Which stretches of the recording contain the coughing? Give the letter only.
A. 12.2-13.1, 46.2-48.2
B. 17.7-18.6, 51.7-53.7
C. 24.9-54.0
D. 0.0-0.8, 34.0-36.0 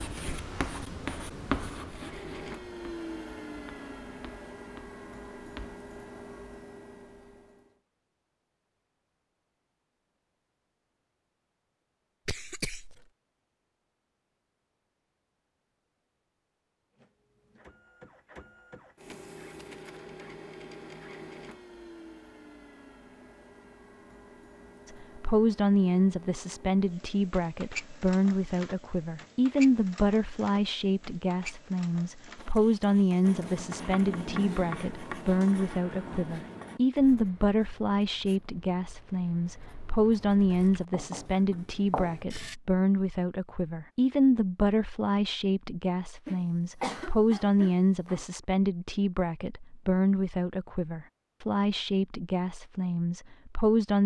A.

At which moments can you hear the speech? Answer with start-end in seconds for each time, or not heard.
24.9-54.0.